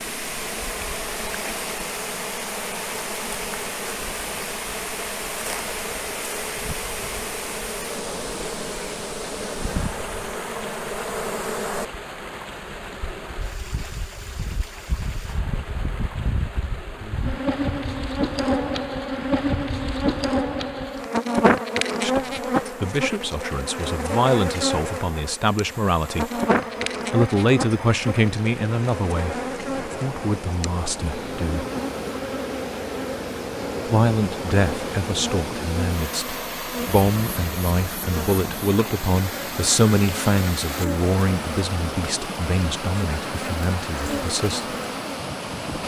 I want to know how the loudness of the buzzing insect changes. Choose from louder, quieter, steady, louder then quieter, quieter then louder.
louder then quieter.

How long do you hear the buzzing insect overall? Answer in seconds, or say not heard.
46 s.